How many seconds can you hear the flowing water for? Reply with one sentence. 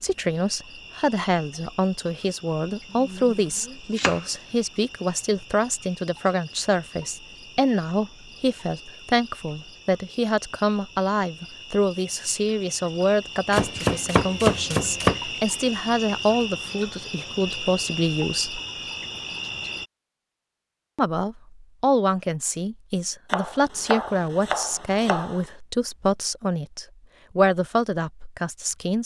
The flowing water can't be heard in this clip.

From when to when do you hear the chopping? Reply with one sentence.
You can hear the chopping from 2.9 to 4.2 s, from 13.5 to 15.2 s and from 23.3 to 25.4 s.